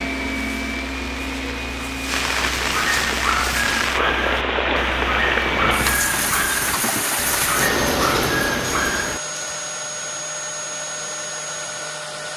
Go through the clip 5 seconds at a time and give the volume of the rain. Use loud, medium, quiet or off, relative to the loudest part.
loud, loud, off.